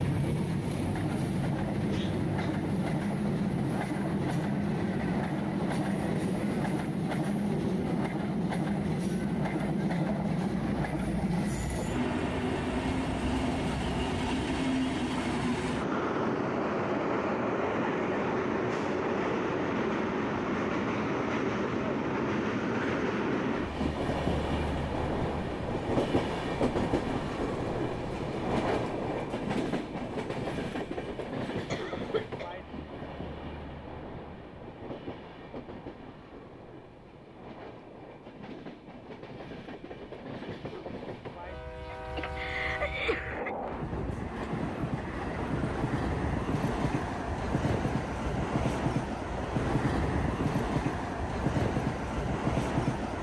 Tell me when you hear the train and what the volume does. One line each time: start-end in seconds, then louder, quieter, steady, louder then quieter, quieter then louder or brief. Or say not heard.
0.0-53.1 quieter then louder.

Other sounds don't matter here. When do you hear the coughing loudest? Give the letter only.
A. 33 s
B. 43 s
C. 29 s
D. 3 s
B.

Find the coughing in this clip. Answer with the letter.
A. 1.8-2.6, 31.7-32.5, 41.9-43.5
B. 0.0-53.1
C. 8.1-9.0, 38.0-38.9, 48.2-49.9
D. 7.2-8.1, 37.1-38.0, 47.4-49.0
A.